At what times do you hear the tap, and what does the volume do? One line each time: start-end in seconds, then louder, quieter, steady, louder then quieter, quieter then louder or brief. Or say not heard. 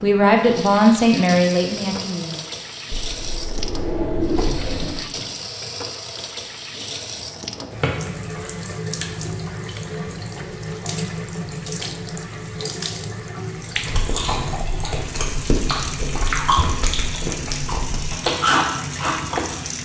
0.0-19.8 steady.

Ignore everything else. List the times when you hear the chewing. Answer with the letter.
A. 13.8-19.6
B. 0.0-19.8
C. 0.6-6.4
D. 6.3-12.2
A.